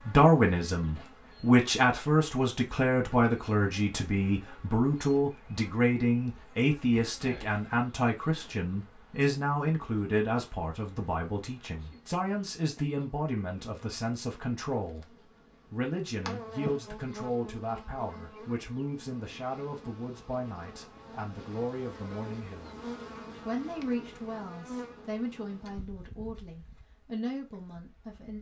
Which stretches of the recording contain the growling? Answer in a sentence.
You can't hear the growling here.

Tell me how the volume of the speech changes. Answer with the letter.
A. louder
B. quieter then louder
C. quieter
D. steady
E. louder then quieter
C.